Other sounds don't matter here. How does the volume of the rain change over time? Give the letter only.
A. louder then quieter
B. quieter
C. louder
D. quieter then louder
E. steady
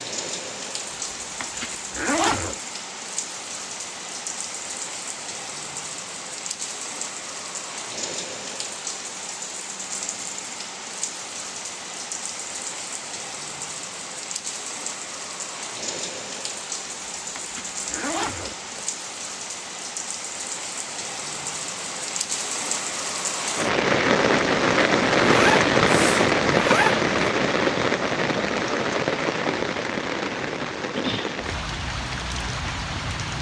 C.